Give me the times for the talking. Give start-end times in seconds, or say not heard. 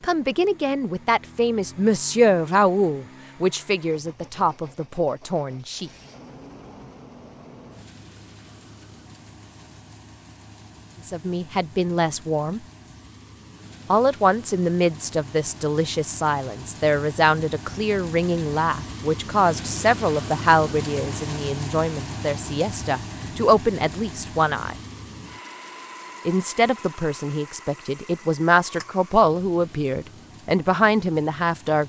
0.0-5.9, 11.1-12.6, 13.9-24.8, 26.2-31.8.